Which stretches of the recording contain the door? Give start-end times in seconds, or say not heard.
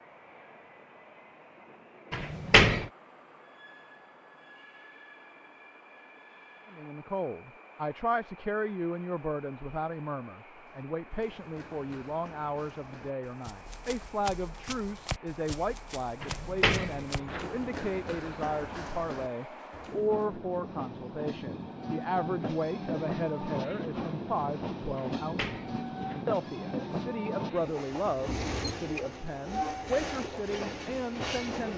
2.1-2.9, 16.2-17.5, 24.9-26.2.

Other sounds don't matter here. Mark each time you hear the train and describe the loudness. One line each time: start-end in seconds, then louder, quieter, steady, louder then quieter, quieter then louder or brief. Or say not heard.
0.0-31.7 louder.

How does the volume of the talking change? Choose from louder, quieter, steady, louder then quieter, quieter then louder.
steady.